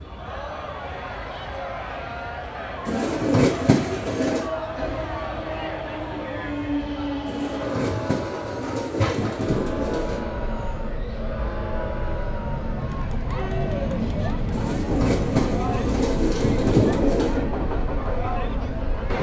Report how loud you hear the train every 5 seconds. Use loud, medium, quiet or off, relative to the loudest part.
medium, loud, loud, loud.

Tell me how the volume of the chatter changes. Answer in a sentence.
The loudness of the chatter stays about the same.